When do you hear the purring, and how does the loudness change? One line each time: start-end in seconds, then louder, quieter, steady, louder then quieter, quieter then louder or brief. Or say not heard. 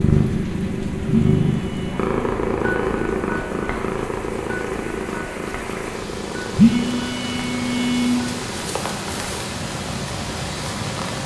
0.0-11.2 quieter.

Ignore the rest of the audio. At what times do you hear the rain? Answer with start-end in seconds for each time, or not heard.
0.0-11.2.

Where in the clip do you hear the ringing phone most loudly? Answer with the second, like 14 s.
7 s.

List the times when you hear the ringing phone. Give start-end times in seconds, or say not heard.
1.3-2.2, 6.5-8.2.